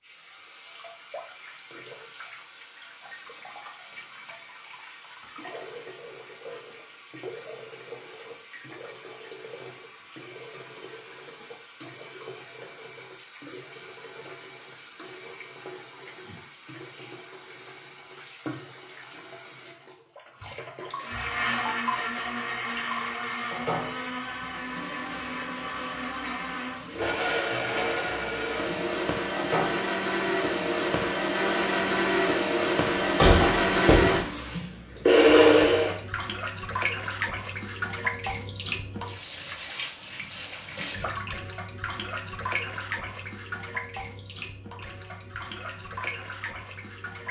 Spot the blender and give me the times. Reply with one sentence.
You can hear the blender from 20.9 to 36.0 s.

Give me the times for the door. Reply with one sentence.
You can hear the door from 33.0 to 34.2 s.